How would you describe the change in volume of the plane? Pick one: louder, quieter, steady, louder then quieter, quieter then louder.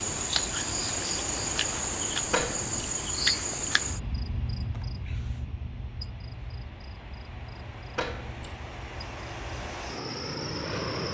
quieter then louder.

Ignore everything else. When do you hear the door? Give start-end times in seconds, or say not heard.
2.3-3.0, 8.0-8.6.